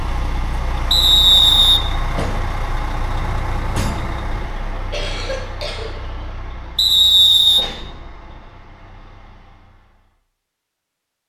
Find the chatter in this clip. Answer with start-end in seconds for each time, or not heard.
not heard.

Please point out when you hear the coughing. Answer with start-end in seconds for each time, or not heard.
4.9-6.3.